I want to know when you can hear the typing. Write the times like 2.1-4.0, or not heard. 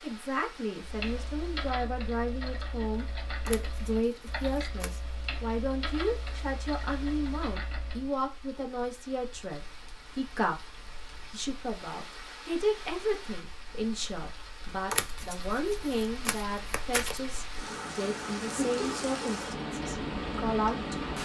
0.8-8.1.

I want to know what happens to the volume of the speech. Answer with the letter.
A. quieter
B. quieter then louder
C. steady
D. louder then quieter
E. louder
C.